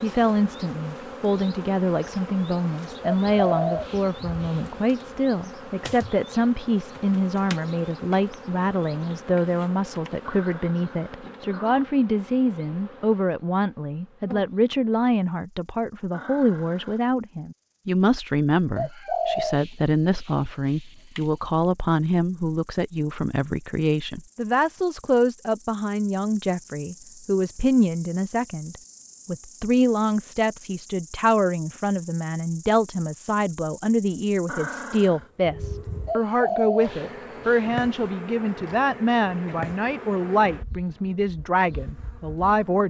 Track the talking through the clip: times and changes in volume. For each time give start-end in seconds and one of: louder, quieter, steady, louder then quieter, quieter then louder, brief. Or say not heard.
0.0-42.8 steady.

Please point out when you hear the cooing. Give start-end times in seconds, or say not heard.
3.2-4.6, 18.8-21.2, 36.0-37.6.